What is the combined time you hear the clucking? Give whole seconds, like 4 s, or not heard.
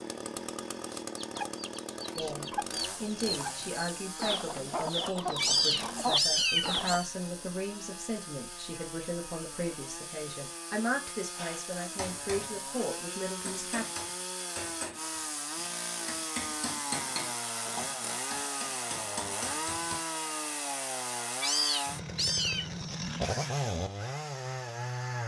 6 s.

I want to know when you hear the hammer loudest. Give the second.
17 s.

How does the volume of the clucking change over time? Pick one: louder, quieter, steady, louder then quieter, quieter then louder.
louder.